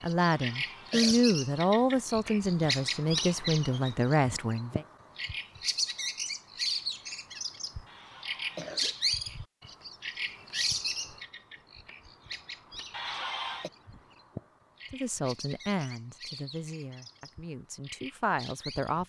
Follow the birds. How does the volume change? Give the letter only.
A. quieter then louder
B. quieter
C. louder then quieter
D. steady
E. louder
B.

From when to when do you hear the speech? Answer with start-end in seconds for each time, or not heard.
0.0-4.8, 14.9-19.0.